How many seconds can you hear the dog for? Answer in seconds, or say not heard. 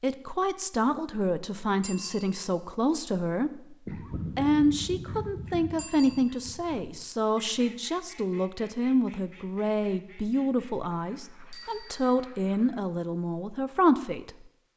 not heard.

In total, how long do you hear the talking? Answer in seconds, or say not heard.
14 s.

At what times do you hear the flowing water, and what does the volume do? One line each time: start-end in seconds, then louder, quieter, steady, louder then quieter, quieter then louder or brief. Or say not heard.
not heard.